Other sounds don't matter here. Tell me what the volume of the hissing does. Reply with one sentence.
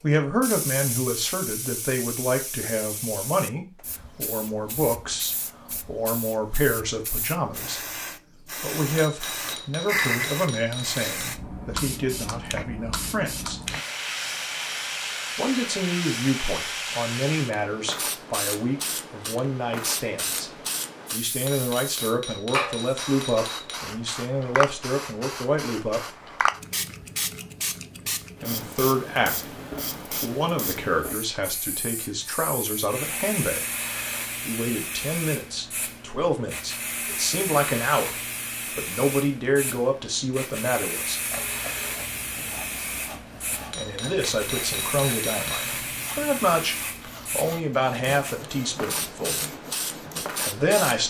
The volume of the hissing stays about the same.